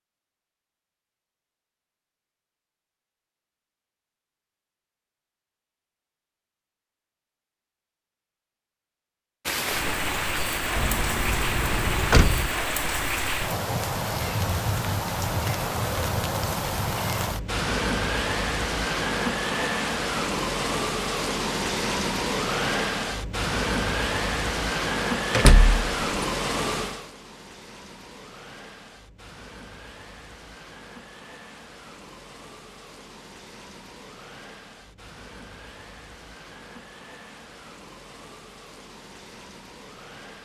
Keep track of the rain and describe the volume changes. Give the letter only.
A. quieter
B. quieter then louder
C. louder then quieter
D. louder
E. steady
A.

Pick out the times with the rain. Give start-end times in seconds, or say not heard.
9.4-40.4.